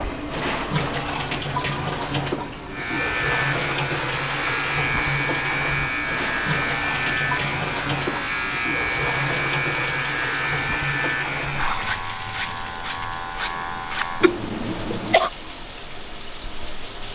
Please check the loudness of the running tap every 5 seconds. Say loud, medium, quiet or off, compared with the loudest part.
loud, loud, medium, medium.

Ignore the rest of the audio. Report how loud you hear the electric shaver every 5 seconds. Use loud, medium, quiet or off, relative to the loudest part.
loud, loud, loud, off.